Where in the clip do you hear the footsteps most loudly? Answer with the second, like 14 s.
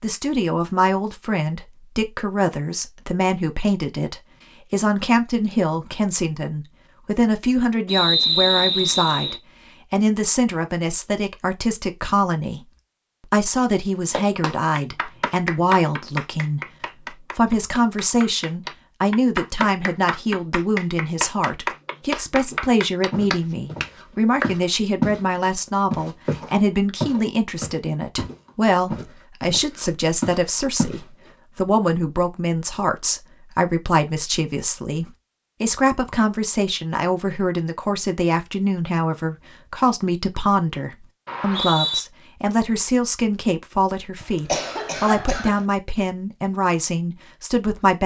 25 s.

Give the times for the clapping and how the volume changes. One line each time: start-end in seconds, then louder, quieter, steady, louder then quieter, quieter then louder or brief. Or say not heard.
14.1-24.6 quieter then louder.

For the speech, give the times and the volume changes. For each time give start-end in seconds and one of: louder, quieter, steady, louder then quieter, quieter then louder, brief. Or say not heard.
0.0-48.0 steady.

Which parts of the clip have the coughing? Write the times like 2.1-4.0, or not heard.
44.2-45.6.